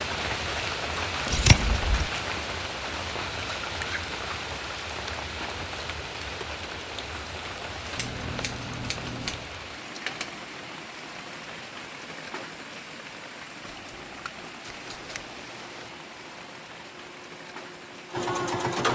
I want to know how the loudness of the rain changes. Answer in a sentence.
The volume of the rain goes down.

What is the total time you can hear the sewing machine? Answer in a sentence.
You can hear the sewing machine for 5 seconds altogether.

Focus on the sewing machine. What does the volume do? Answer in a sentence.
The volume of the sewing machine goes up.